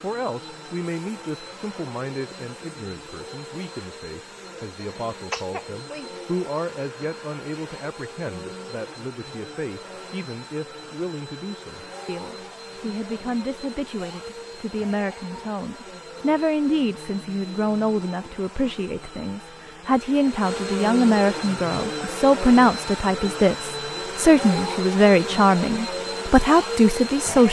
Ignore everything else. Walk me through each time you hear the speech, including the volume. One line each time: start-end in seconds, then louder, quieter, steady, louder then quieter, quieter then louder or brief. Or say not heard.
0.0-27.4 louder.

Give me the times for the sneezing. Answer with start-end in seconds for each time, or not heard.
5.3-6.1.